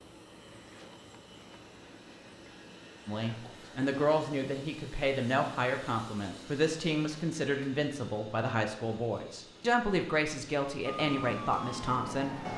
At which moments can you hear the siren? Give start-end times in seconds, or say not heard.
10.8-12.5.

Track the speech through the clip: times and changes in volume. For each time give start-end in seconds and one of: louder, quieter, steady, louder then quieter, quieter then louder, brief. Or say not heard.
3.0-12.3 steady.